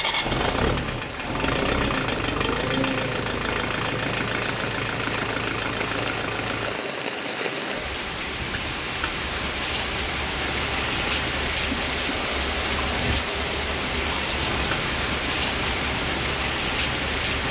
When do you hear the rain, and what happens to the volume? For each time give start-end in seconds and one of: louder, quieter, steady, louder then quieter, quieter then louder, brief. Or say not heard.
0.0-17.4 louder.